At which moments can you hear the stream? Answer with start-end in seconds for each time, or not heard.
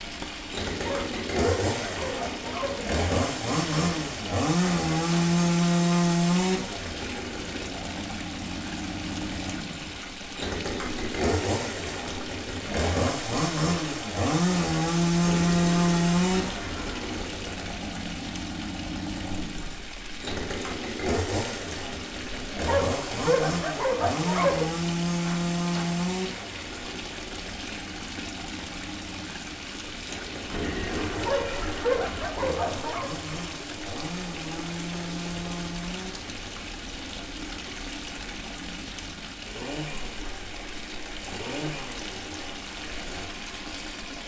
0.0-44.2.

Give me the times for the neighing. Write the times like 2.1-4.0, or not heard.
15.2-17.2, 30.5-32.5.